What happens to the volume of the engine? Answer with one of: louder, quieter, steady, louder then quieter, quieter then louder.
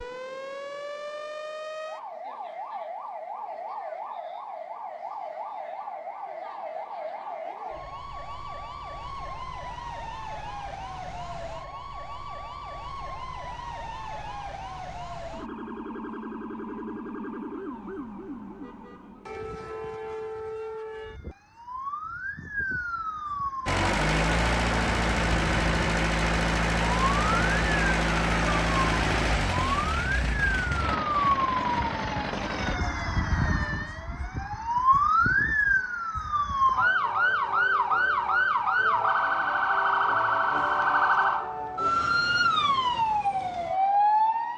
quieter.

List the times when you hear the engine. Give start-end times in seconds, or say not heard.
23.6-32.8.